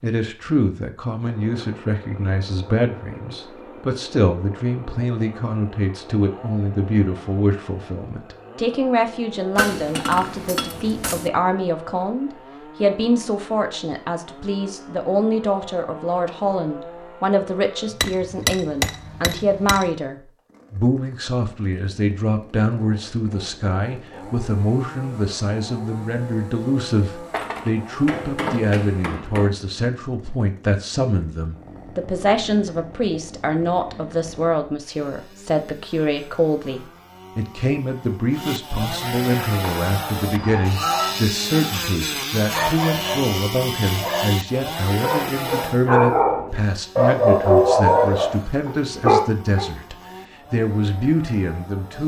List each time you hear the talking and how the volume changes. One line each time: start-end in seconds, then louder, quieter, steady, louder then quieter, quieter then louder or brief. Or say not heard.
0.0-52.0 steady.